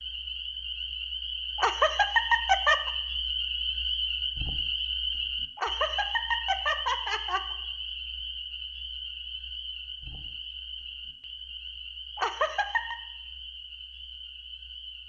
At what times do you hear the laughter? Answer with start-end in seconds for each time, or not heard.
1.6-2.9, 5.5-7.5, 12.2-12.9.